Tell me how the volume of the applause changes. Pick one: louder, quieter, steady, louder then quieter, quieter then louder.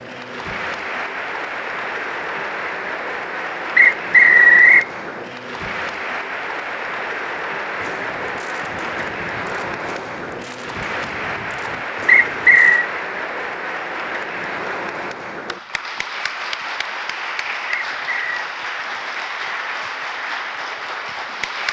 steady.